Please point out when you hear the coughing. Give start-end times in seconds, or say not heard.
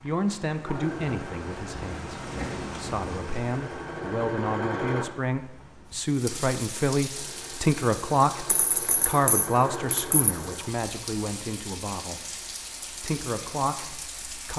not heard.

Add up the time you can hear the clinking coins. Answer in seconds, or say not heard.
2 s.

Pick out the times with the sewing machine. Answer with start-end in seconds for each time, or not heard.
0.0-5.0, 7.2-10.8.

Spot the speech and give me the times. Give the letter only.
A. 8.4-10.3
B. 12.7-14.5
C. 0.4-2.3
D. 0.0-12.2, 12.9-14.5
D.